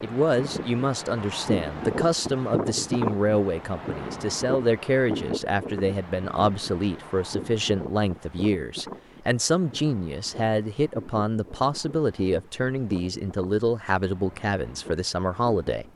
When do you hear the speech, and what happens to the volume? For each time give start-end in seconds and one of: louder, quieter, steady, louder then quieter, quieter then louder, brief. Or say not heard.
0.0-15.8 steady.